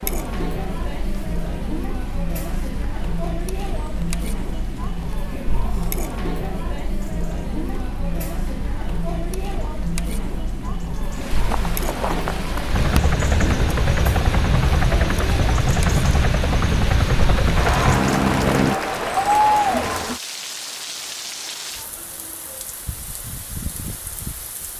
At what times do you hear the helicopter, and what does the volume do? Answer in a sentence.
The helicopter can be heard from 12.7 to 18.8 s, at a steady volume.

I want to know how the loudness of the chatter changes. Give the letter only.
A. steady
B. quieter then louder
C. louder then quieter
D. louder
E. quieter
D.